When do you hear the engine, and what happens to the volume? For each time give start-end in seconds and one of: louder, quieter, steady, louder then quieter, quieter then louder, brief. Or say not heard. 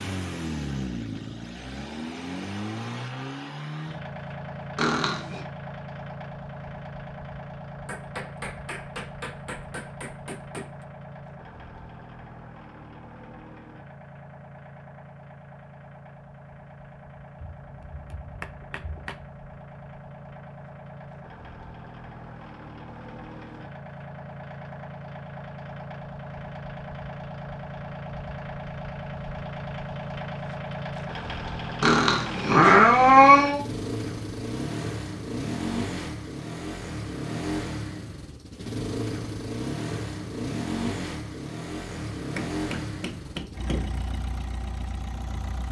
0.0-45.6 quieter then louder.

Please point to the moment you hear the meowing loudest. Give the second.
33 s.